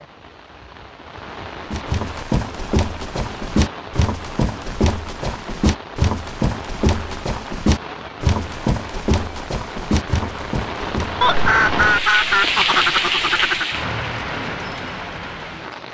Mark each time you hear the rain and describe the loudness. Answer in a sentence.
The rain can be heard from 0.0 to 15.8 s, getting louder.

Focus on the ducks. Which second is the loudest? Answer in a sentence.
The loudest moment of the ducks is at 12 seconds.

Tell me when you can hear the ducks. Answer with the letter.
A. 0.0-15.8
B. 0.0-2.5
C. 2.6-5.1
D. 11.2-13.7
D.